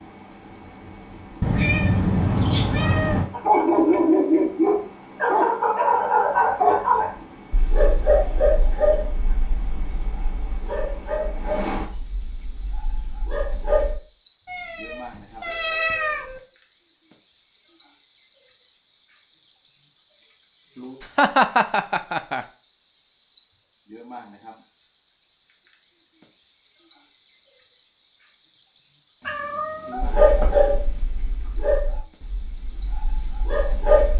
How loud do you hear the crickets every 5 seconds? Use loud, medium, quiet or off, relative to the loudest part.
quiet, quiet, loud, loud, loud, loud, loud.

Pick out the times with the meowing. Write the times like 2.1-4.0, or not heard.
1.4-3.2, 14.4-16.4, 29.2-30.8.